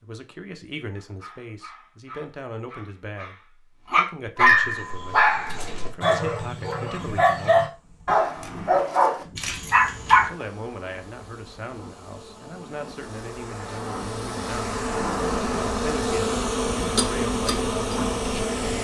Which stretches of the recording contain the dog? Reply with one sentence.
You can hear the dog from 0.9 to 10.3 s.